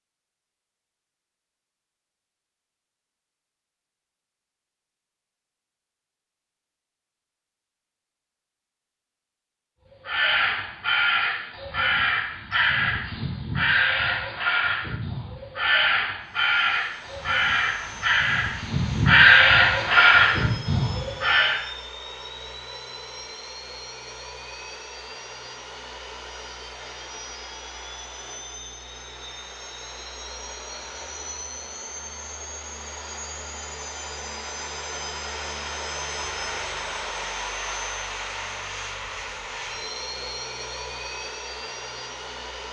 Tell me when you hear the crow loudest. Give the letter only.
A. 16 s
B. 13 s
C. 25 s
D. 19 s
D.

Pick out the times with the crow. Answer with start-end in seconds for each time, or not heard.
10.0-21.6.